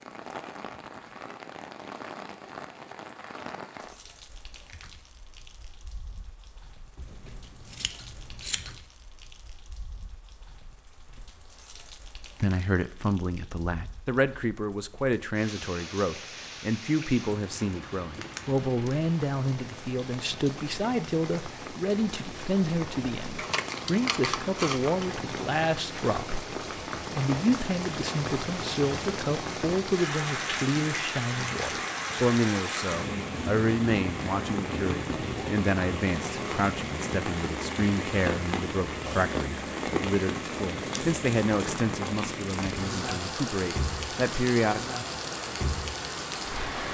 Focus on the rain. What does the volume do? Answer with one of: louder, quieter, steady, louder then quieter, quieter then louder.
louder.